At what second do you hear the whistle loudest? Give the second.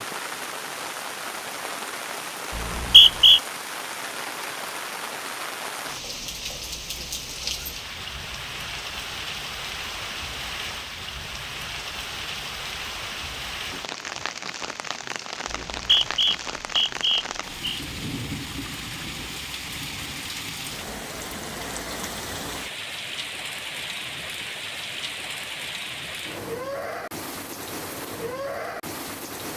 3 s.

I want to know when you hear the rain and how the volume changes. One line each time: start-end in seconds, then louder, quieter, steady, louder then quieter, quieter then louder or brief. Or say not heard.
0.0-29.5 steady.